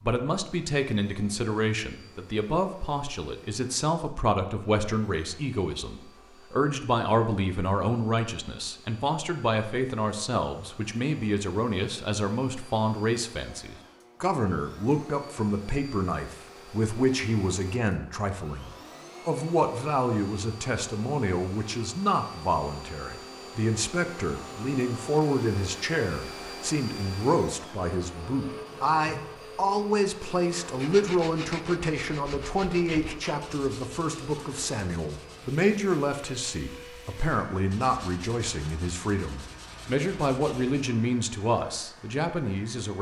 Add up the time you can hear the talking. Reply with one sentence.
You can hear the talking for 43 seconds altogether.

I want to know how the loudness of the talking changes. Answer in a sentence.
The volume of the talking stays about the same.